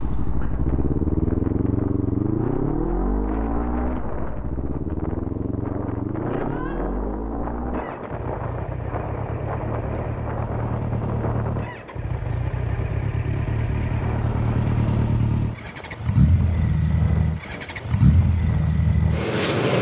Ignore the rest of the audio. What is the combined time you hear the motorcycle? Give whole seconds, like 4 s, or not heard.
20 s.